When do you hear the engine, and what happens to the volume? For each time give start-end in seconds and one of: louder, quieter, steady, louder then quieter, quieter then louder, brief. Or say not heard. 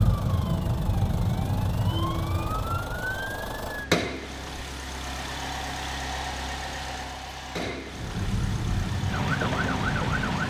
0.0-10.4 louder then quieter.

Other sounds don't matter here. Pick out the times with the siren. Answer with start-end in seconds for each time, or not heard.
0.0-4.0, 7.9-10.4.